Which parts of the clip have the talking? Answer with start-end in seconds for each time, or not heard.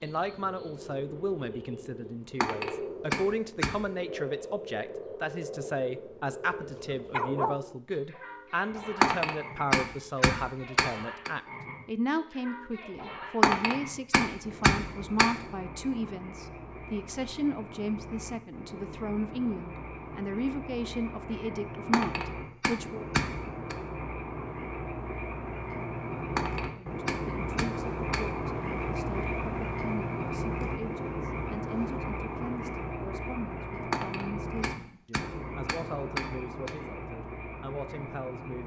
0.0-23.1, 26.7-38.6.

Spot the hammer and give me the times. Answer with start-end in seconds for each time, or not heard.
2.4-3.9, 9.0-11.3, 13.4-15.3, 21.9-23.8, 26.4-28.2, 33.9-36.8.